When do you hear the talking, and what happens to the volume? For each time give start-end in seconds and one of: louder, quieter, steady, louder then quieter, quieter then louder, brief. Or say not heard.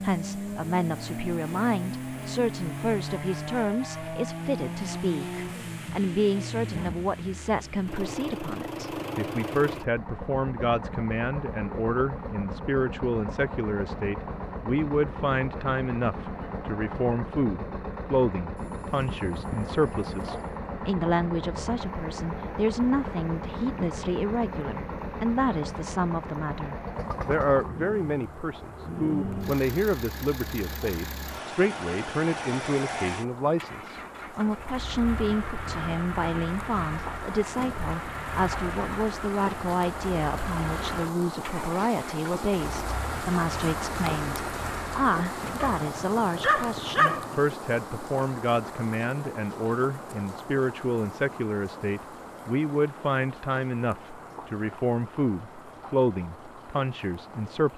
0.0-57.7 steady.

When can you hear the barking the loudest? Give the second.
47 s.